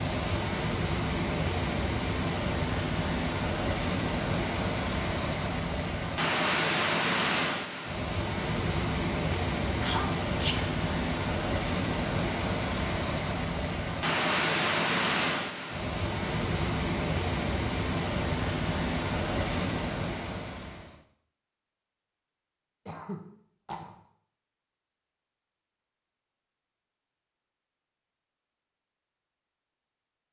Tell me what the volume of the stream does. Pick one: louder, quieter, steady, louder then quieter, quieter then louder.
steady.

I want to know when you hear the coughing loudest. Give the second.
10 s.